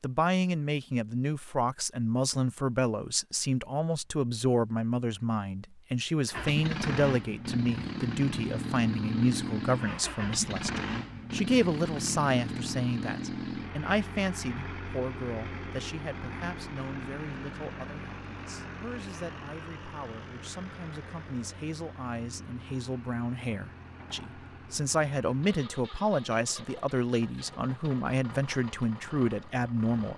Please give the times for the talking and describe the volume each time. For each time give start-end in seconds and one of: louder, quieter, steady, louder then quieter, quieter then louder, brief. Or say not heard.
0.0-30.1 quieter then louder.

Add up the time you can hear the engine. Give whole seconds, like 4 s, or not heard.
24 s.